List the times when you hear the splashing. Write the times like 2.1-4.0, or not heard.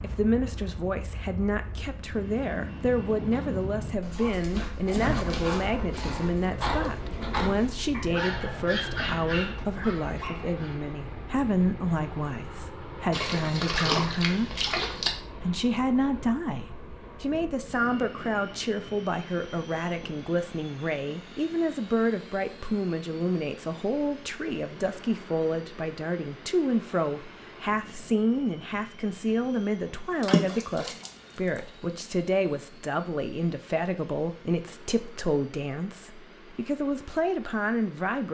13.1-15.1, 30.2-31.6.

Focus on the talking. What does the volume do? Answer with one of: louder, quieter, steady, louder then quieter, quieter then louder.
steady.